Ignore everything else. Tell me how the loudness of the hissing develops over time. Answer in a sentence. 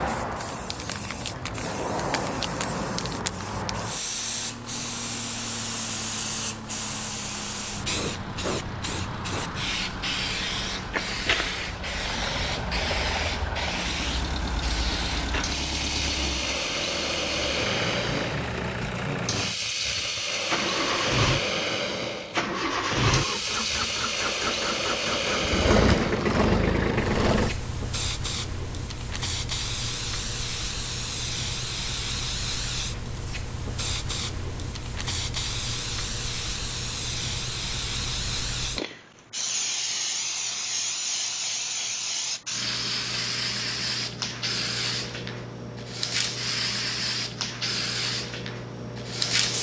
The loudness of the hissing stays about the same.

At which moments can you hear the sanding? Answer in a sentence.
You can't hear the sanding here.